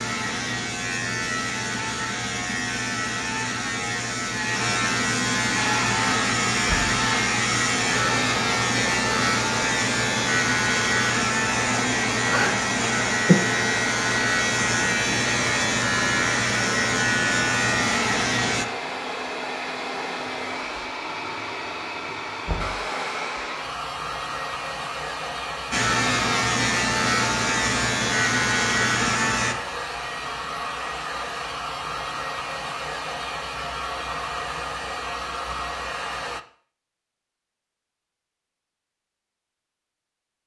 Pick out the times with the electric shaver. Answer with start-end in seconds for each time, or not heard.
0.0-18.6, 25.7-29.6.